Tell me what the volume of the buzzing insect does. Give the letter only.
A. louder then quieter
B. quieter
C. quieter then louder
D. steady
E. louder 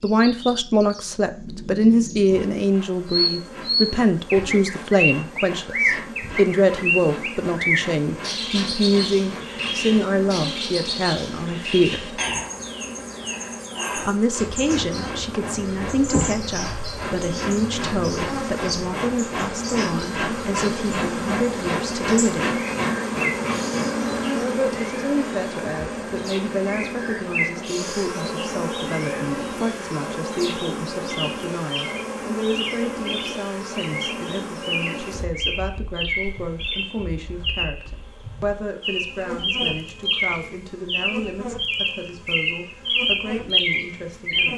A.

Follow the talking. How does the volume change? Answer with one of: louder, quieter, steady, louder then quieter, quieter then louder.
quieter.